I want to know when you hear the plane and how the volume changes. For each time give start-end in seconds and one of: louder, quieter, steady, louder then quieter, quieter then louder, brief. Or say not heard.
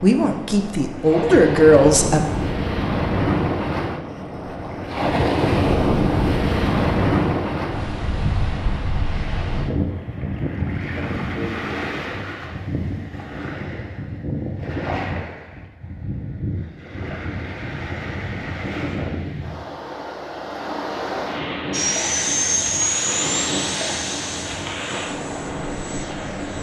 21.7-26.5 quieter.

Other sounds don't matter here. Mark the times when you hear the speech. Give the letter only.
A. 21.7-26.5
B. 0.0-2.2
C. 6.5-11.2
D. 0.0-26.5
B.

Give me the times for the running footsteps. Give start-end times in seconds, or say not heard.
not heard.